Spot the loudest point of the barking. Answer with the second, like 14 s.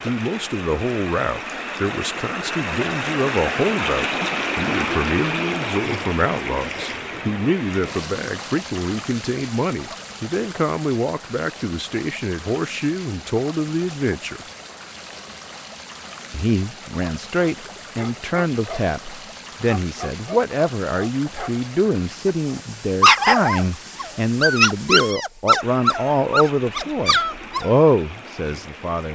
23 s.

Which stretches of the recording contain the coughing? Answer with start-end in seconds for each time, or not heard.
not heard.